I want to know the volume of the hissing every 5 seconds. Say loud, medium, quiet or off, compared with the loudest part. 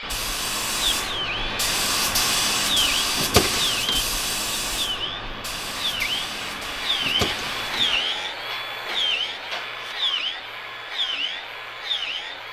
loud, medium, off.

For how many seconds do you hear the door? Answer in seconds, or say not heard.
2 s.